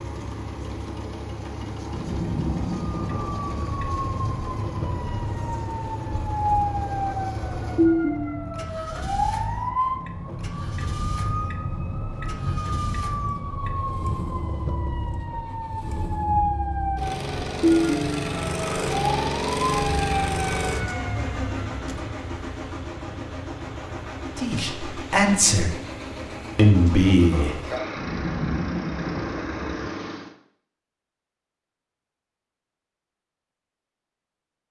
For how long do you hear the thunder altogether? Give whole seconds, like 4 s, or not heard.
4 s.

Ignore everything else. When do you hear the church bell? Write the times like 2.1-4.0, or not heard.
not heard.